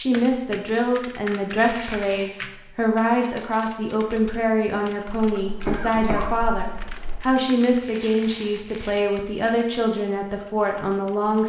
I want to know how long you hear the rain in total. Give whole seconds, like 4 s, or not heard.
not heard.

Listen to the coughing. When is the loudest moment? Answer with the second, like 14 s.
6 s.